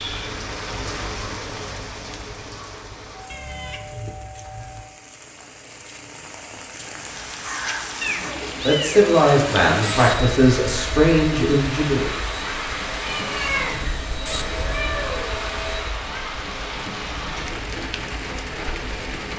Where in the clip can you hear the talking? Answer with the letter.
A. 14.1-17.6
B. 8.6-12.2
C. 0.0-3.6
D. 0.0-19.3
B.